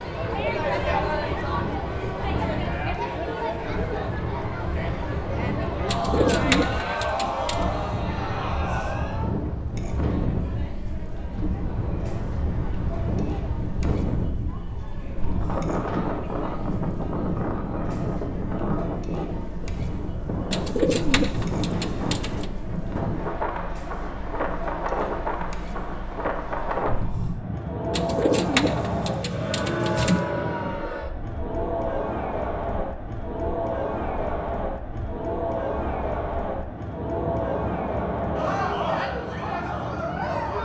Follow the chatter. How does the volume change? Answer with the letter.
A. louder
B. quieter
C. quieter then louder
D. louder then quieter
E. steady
C.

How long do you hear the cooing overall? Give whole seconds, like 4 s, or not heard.
6 s.